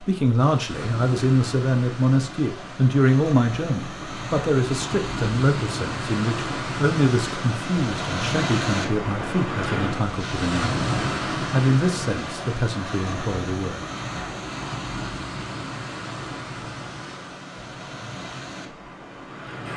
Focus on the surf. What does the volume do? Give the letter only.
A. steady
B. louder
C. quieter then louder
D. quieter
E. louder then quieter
E.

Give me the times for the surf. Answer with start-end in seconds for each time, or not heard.
0.0-19.7.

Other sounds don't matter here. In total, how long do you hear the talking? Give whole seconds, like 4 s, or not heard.
13 s.